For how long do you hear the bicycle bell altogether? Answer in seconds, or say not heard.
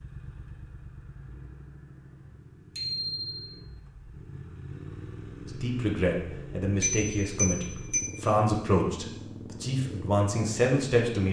2 s.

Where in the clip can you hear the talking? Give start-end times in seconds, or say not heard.
5.5-11.2.